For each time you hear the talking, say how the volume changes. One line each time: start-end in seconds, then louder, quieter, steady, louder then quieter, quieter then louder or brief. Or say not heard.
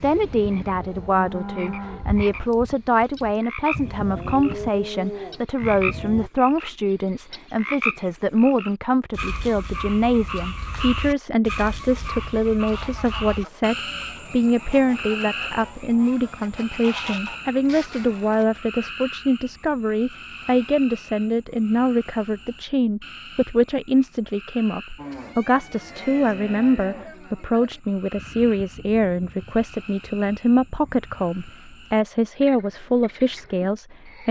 0.0-34.2 steady.